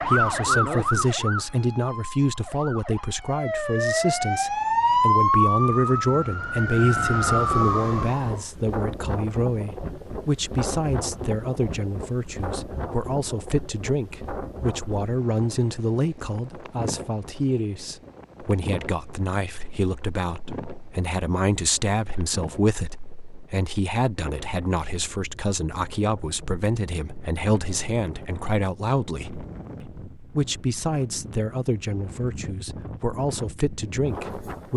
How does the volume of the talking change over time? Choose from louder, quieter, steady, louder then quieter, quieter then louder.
steady.